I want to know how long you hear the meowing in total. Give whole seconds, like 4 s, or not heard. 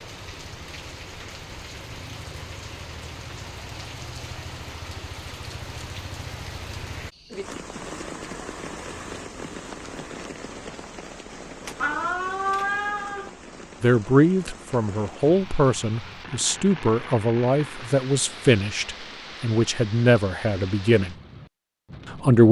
2 s.